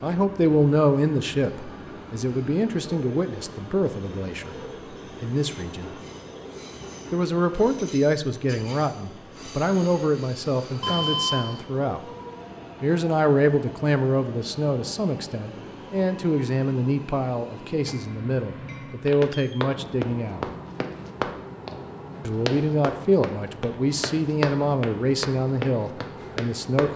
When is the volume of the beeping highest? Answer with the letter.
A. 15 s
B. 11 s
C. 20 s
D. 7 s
B.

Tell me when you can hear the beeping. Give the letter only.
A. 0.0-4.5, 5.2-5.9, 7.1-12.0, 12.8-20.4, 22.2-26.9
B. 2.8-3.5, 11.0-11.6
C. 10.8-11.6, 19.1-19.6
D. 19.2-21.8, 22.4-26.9
C.